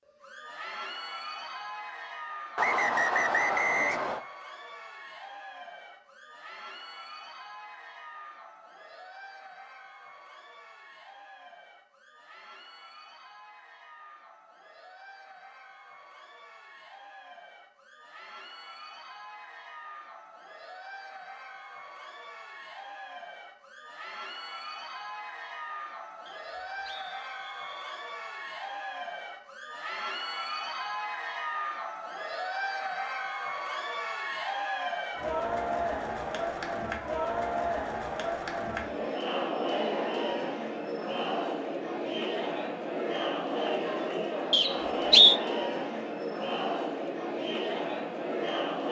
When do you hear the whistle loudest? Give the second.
45 s.